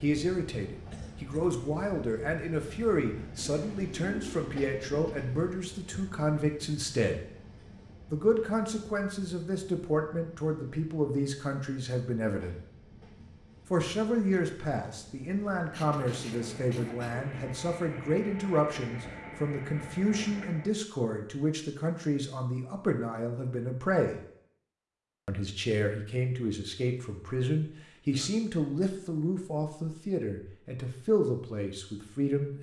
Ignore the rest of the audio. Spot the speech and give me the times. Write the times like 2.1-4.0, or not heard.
0.0-7.2, 8.1-12.6, 13.7-24.2, 25.2-32.5.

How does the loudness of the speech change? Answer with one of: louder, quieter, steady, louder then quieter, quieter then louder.
steady.